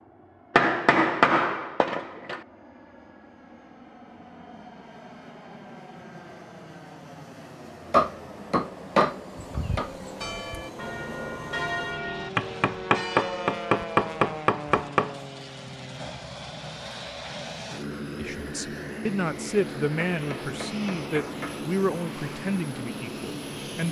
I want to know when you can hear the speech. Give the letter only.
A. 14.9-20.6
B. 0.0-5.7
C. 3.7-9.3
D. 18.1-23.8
D.